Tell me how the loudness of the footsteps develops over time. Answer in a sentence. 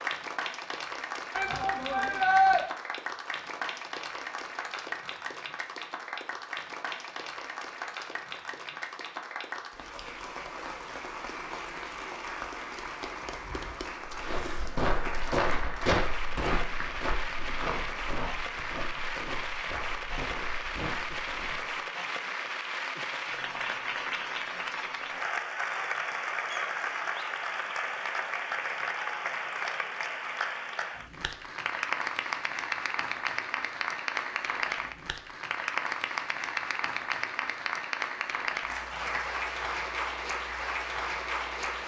The loudness of the footsteps goes down.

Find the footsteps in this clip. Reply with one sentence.
The footsteps can be heard from 14.1 to 21.7 s.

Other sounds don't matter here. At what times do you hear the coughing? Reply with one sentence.
You can't hear the coughing here.